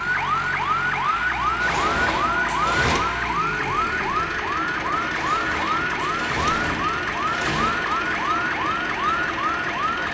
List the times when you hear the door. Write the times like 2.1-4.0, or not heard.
1.6-3.0, 5.1-7.7.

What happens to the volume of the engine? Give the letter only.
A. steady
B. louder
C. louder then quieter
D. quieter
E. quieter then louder
A.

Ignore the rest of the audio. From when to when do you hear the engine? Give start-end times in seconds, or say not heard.
0.0-10.0.